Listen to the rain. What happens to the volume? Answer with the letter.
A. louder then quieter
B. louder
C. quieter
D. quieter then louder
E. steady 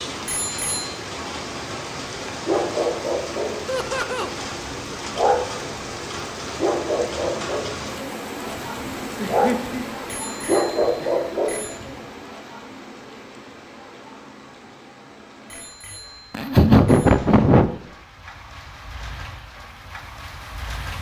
C.